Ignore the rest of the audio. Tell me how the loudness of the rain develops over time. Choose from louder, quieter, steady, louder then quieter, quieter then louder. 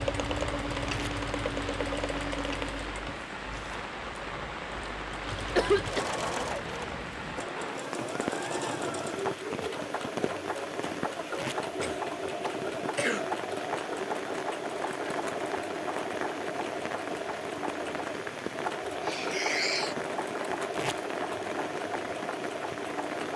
steady.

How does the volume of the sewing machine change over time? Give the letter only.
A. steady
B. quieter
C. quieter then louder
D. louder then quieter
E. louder
A.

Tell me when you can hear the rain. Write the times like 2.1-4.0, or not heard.
0.0-23.3.